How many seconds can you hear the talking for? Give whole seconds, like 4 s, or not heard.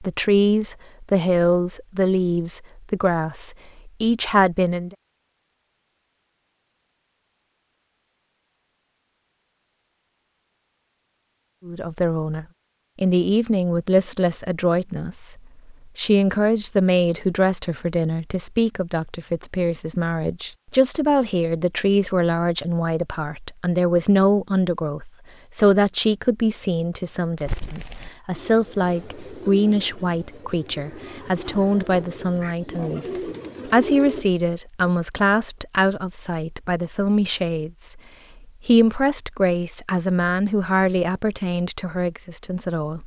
36 s.